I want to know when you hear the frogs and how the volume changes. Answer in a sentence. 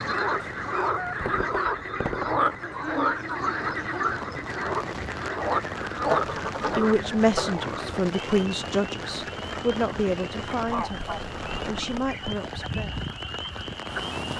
The frogs can be heard from 0.0 to 14.3 s, getting quieter.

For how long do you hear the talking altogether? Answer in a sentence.
The talking can be heard for 7 seconds in total.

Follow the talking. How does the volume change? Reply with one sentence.
The volume of the talking goes down.